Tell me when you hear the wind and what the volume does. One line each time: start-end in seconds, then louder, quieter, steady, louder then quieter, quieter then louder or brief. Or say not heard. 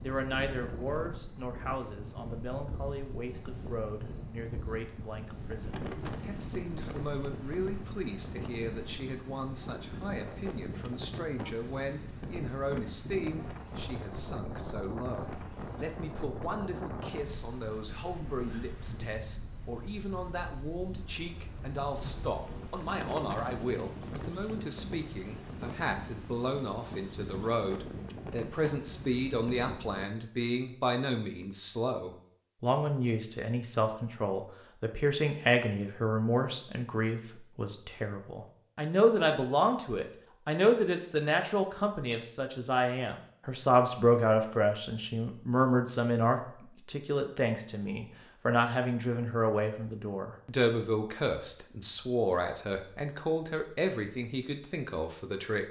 0.0-30.1 steady.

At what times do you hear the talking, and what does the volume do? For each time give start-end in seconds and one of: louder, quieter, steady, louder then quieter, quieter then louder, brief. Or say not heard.
0.0-55.6 louder.